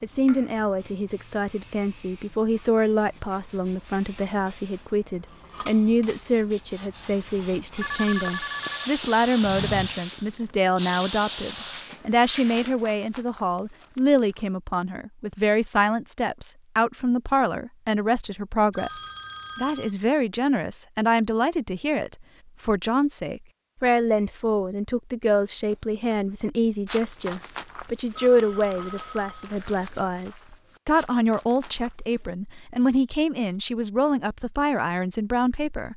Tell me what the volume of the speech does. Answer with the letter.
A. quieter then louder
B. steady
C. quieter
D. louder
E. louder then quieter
B.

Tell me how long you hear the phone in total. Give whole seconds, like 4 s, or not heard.
4 s.